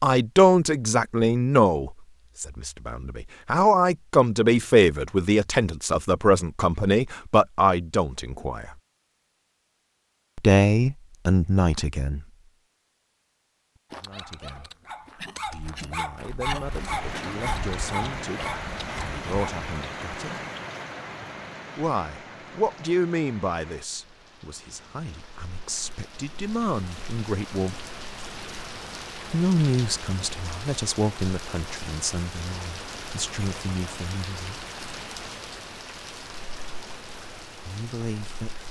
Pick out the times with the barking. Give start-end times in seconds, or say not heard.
13.9-19.7.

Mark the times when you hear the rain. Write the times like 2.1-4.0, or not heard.
16.6-38.6.